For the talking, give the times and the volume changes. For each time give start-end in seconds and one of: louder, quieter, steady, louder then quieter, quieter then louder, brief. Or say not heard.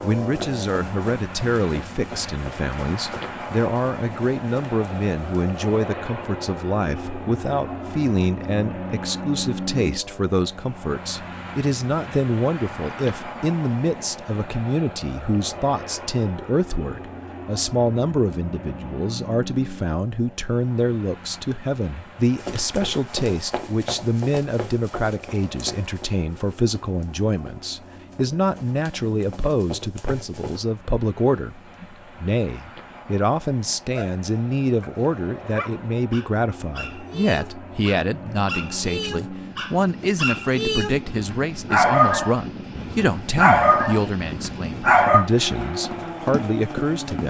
0.0-47.2 steady.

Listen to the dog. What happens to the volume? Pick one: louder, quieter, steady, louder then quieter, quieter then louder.
louder.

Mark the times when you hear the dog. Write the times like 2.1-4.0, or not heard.
33.9-45.2.